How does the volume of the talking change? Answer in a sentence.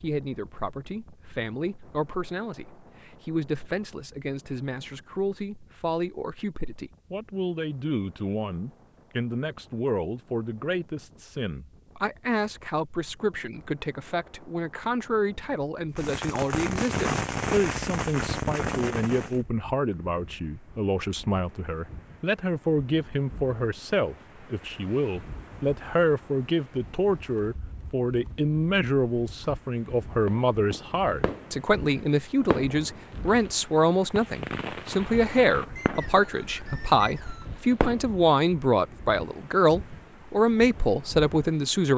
The volume of the talking goes up.